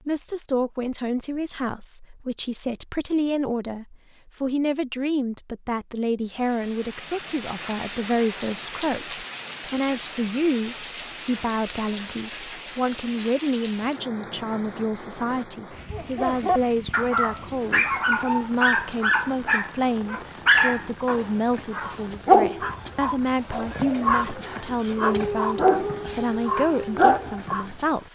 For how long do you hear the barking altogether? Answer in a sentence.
You can hear the barking for 12 seconds altogether.